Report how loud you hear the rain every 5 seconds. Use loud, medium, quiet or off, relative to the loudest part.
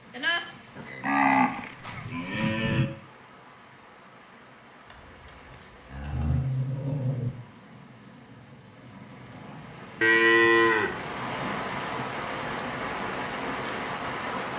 quiet, quiet, loud.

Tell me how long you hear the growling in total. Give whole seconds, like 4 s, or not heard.
2 s.